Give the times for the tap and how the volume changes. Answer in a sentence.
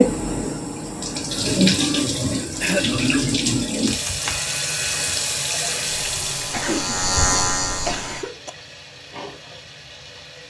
You can hear the tap from 0.0 to 10.4 s, getting quieter.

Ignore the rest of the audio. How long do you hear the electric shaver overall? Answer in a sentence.
The electric shaver can be heard for 4 seconds in total.